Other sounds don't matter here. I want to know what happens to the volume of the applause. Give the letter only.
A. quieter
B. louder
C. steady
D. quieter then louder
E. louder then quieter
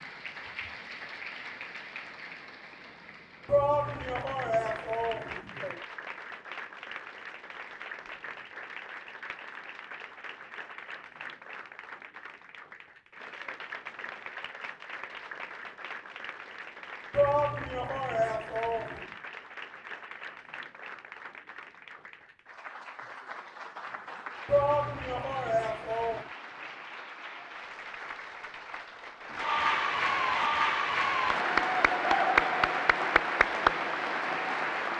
B.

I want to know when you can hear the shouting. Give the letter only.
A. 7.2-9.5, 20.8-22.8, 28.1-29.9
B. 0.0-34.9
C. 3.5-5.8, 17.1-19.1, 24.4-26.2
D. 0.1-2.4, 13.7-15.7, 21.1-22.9
C.